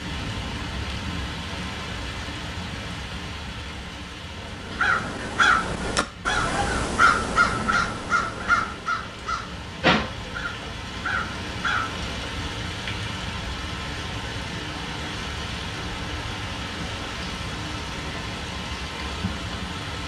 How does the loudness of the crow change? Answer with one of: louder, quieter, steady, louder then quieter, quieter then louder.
quieter.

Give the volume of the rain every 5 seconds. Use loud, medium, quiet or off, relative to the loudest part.
loud, medium, loud, loud.